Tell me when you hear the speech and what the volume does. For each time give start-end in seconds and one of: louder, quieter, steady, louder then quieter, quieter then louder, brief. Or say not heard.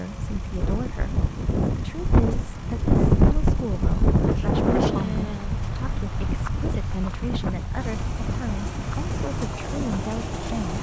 0.0-10.7 steady.